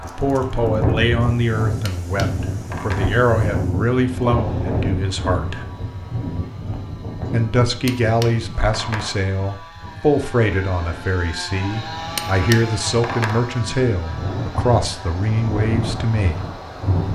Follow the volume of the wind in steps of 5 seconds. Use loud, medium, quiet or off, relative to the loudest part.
loud, medium, medium, loud.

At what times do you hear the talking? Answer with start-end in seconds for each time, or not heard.
0.0-5.7, 7.3-16.4.